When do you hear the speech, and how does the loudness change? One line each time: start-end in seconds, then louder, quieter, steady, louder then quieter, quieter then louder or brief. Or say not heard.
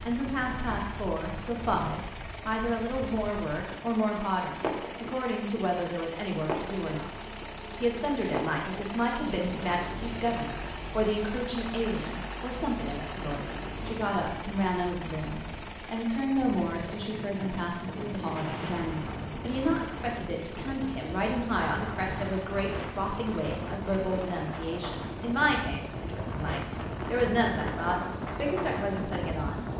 0.1-29.6 steady.